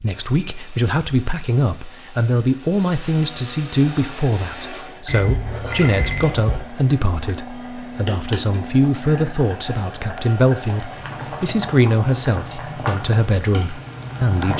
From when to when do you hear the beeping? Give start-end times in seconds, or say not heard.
5.0-6.6.